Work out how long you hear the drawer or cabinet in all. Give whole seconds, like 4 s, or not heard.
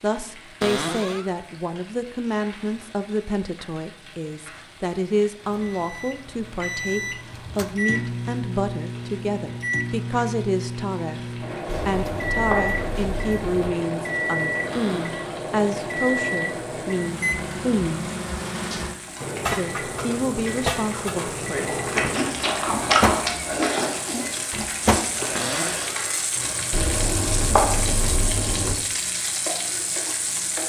2 s.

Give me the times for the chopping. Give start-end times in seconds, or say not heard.
11.7-13.7, 26.7-28.8.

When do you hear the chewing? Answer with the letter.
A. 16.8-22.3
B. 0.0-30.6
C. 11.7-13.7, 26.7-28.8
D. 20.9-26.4
D.